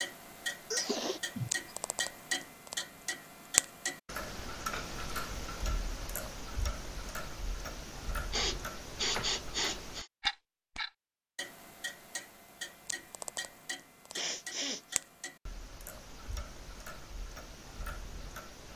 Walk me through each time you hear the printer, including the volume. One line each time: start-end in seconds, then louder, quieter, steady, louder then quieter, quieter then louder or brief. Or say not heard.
not heard.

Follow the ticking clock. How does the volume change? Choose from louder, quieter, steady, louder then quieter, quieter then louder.
quieter.